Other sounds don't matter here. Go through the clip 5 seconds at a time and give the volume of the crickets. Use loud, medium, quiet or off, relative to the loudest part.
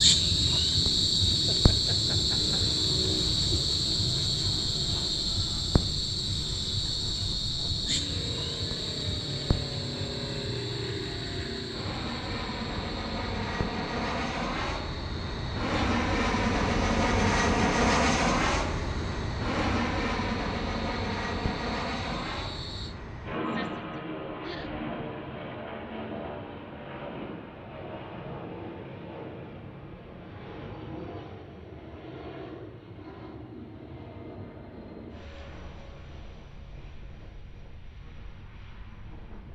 loud, medium, quiet, quiet, quiet, off, off, off.